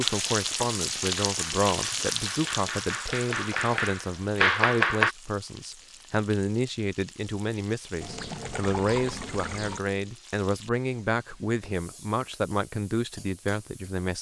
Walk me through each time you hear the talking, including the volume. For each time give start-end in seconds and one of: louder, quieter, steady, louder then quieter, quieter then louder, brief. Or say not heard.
0.0-14.1 steady.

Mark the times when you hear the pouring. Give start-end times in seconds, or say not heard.
8.0-9.8.